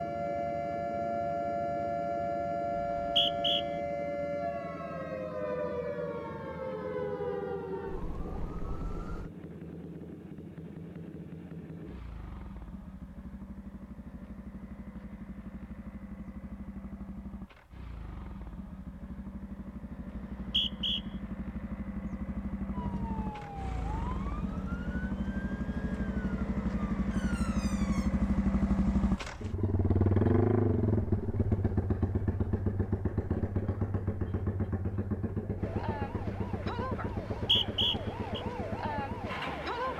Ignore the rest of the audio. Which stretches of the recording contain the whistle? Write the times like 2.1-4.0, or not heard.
2.8-3.6, 20.1-21.0, 37.4-38.4.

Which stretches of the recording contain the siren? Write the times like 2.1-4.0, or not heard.
0.0-9.3, 22.7-28.1, 35.5-39.9.